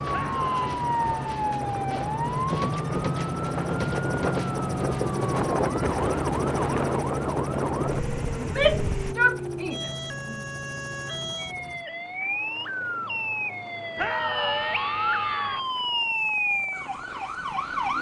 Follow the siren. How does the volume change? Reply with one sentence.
The volume of the siren goes down, then up.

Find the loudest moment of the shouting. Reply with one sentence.
The loudest moment of the shouting is at 9 seconds.